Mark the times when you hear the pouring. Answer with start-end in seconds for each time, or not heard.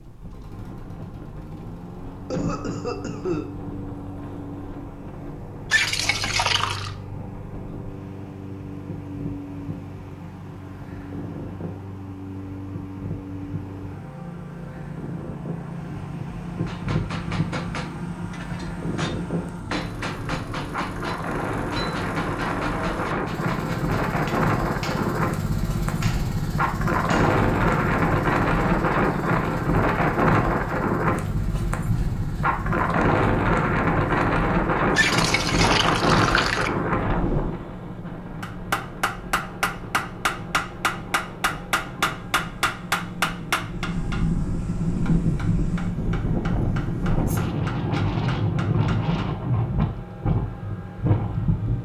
5.7-7.0, 35.0-36.7.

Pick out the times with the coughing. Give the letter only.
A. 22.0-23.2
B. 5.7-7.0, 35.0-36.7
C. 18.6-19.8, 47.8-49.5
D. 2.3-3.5
D.